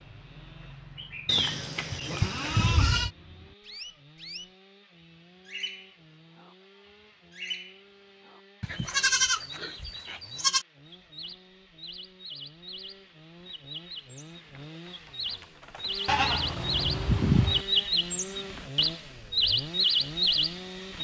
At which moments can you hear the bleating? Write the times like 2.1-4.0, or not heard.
1.2-3.1, 8.6-10.7, 16.1-17.6.